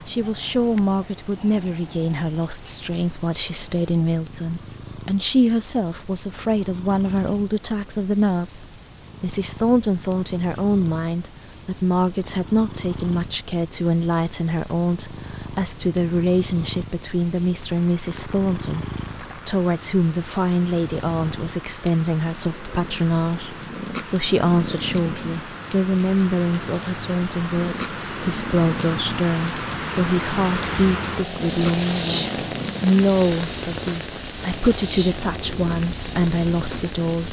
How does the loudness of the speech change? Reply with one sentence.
The volume of the speech stays about the same.